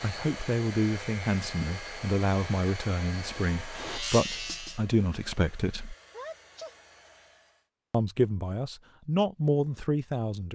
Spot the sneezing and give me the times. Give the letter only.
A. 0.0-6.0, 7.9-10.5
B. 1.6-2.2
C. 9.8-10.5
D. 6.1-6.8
D.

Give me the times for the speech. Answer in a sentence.
You can hear the speech from 0.0 to 6.0 s and from 7.9 to 10.5 s.